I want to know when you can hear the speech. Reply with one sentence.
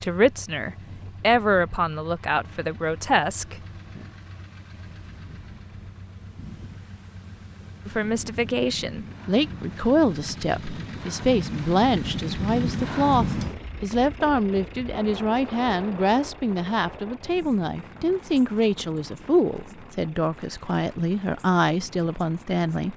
The speech can be heard from 0.0 to 3.6 s and from 7.8 to 22.9 s.